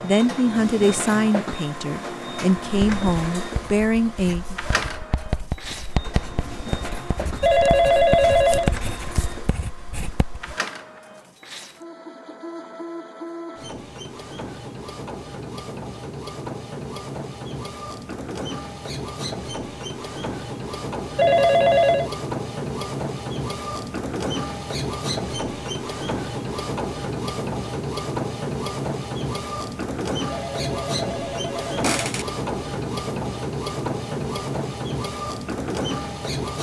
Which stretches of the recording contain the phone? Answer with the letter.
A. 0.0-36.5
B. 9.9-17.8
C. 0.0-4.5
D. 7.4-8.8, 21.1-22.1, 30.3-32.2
D.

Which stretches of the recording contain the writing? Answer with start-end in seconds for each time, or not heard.
2.6-10.6.